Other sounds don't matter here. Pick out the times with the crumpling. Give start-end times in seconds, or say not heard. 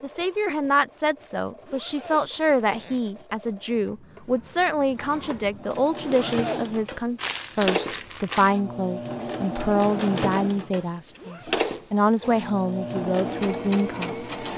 7.2-8.6.